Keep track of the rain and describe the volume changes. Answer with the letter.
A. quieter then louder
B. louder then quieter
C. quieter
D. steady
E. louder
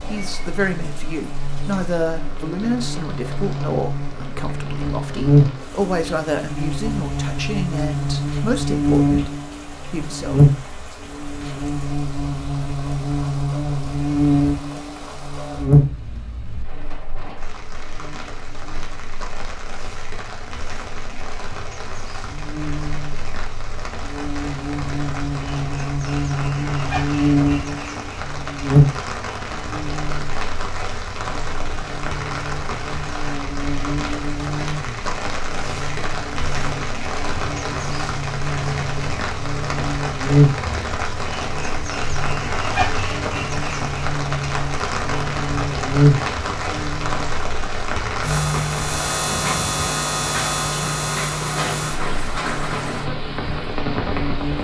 E.